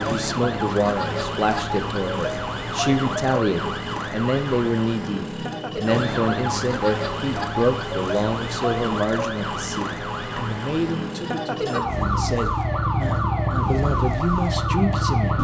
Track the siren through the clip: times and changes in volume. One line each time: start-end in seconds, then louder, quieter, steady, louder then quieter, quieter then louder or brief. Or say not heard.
0.0-15.3 steady.